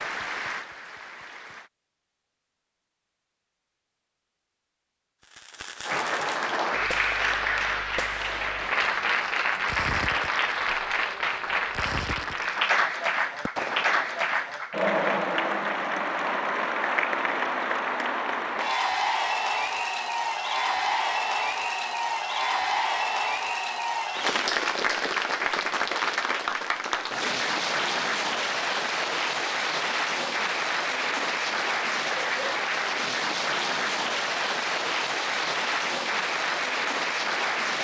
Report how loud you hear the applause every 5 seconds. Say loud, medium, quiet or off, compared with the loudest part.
medium, loud, loud, loud, loud, loud, loud, loud.